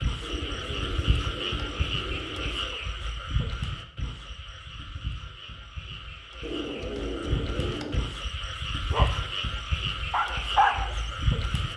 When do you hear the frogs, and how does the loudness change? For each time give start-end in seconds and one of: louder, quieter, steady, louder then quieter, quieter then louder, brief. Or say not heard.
0.0-11.7 quieter then louder.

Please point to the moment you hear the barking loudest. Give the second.
11 s.